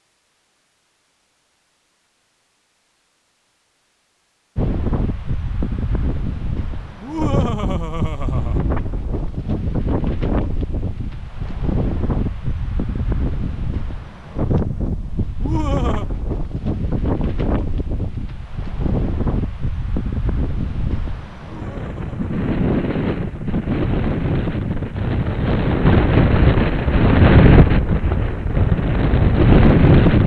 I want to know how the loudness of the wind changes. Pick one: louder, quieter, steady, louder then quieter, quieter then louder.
louder.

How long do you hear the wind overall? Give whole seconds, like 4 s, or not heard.
26 s.